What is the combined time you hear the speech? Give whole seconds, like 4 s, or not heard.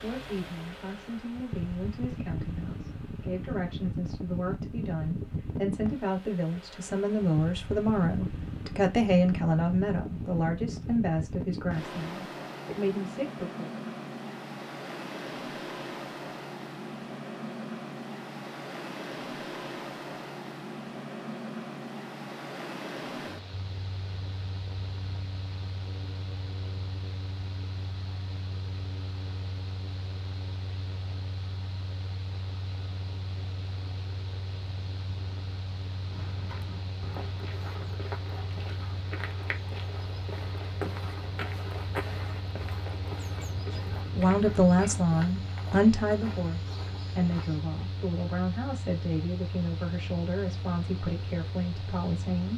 22 s.